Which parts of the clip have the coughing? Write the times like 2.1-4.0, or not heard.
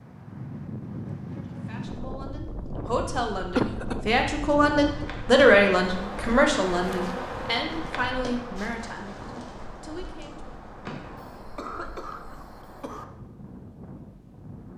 3.5-4.0, 11.2-13.1.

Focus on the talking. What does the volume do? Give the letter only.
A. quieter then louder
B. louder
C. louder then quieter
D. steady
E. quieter
C.